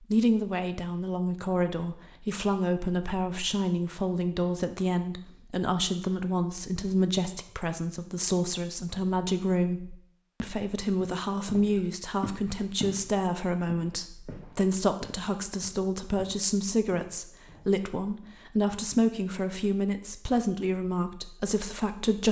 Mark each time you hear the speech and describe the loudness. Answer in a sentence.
You can hear the speech from 0.0 to 22.2 s, at a steady volume.